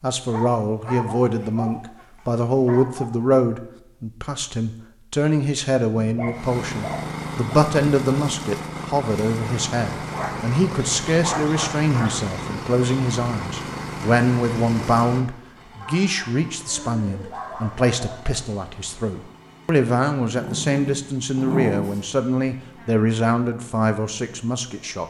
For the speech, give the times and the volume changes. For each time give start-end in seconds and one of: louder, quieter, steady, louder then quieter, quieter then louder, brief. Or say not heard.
0.0-25.0 steady.